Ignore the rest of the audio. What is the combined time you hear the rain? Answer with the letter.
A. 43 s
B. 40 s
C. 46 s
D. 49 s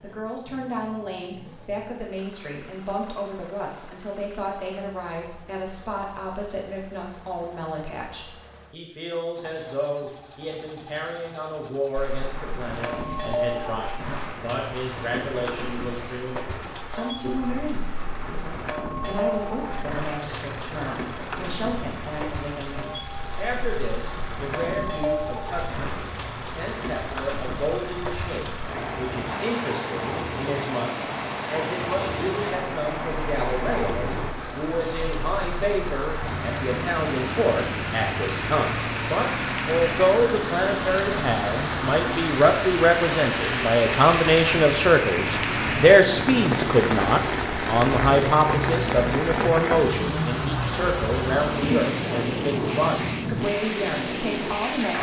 A.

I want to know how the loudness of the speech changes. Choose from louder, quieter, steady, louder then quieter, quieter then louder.
louder.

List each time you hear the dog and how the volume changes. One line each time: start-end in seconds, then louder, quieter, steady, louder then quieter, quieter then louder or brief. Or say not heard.
not heard.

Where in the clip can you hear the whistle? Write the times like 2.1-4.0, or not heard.
not heard.